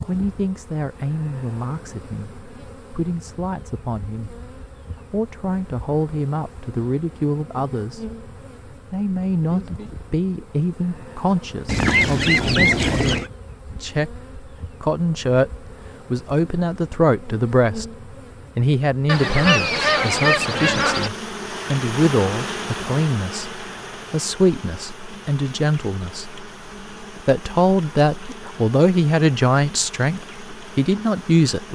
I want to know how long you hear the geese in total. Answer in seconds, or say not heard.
4 s.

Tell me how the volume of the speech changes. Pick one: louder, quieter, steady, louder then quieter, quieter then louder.
louder.